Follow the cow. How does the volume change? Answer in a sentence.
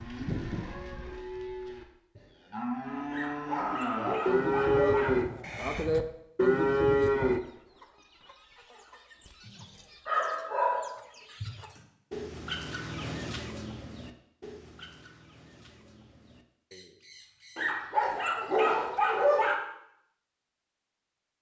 The loudness of the cow goes up.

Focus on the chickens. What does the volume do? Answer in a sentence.
The volume of the chickens goes up, then down.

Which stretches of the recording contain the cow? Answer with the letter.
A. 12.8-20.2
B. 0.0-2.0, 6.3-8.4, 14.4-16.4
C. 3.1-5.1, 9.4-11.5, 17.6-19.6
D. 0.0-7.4
D.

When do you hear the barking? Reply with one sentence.
You can hear the barking from 3.1 to 5.1 s, from 9.4 to 11.5 s and from 17.6 to 19.6 s.